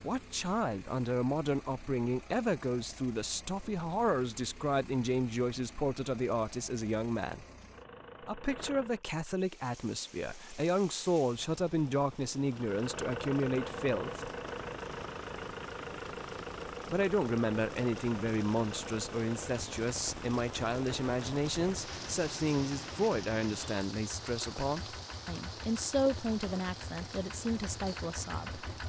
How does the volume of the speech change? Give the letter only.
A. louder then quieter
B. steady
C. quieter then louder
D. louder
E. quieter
B.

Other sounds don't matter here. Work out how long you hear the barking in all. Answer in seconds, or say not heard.
not heard.